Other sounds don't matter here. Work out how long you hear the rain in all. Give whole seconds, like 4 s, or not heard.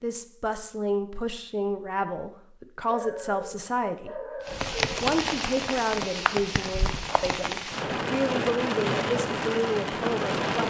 6 s.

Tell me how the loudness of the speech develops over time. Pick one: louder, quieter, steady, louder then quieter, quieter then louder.
steady.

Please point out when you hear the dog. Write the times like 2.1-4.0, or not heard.
2.9-4.8.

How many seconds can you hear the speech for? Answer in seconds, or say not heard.
10 s.